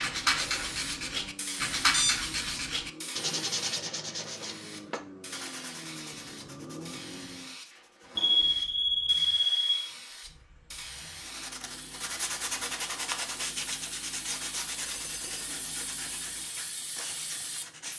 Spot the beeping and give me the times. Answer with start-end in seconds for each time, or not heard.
1.9-2.6, 8.2-9.9, 14.8-15.6.